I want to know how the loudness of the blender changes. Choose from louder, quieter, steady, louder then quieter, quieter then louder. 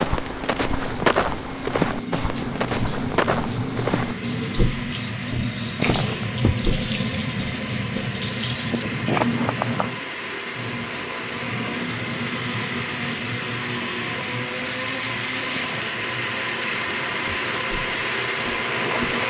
louder.